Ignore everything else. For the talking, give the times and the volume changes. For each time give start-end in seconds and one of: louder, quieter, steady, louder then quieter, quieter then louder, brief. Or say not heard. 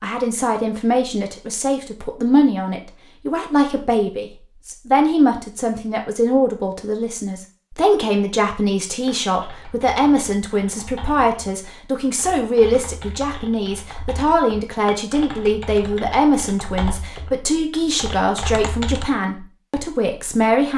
0.0-20.7 steady.